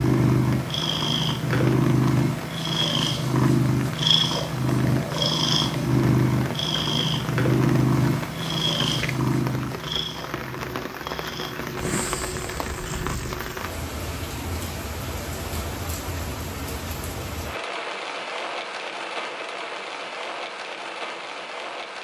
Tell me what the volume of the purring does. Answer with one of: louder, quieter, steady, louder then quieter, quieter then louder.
quieter.